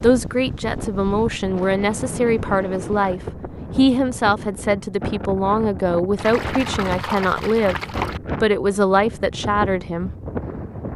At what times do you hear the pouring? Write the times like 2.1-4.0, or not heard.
6.2-8.2.